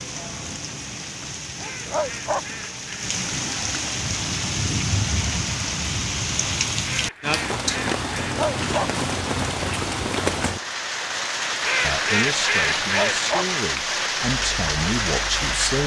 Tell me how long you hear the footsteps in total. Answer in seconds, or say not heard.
not heard.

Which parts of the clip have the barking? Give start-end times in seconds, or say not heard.
1.6-2.5, 8.2-8.9, 12.8-13.4.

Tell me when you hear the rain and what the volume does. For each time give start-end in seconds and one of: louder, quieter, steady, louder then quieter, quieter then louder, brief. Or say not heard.
0.0-15.8 louder.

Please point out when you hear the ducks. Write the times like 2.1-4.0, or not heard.
1.6-3.1, 6.8-8.4, 11.6-13.2.